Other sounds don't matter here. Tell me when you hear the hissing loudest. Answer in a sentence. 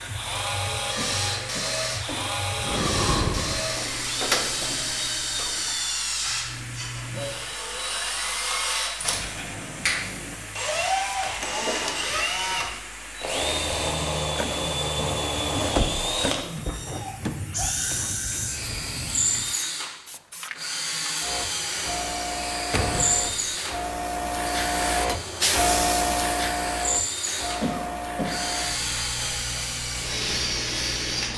The volume of the hissing peaks at 26 seconds.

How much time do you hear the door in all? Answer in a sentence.
The door can be heard for 5 seconds in total.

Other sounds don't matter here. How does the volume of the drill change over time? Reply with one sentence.
The loudness of the drill stays about the same.